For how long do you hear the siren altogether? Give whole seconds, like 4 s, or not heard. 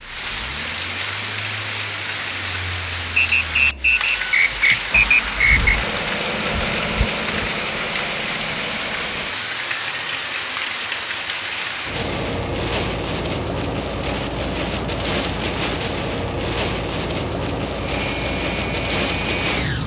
not heard.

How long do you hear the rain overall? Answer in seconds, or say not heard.
20 s.